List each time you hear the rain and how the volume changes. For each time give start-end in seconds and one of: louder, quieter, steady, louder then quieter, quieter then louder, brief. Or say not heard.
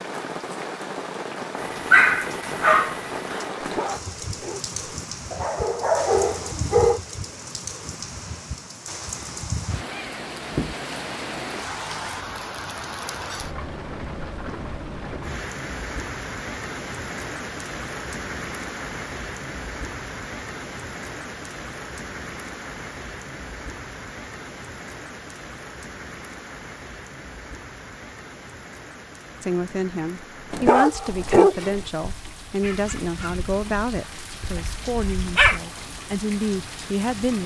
0.0-37.4 quieter.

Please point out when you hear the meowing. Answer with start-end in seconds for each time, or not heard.
9.8-10.8.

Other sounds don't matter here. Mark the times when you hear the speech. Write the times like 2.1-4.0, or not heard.
29.4-37.4.